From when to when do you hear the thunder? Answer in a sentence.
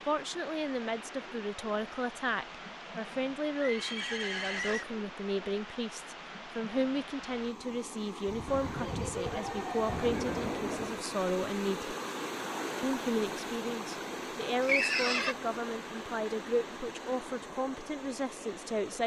You can hear the thunder from 8.2 to 11.1 s.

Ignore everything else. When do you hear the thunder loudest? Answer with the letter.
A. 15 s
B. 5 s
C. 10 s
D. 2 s
C.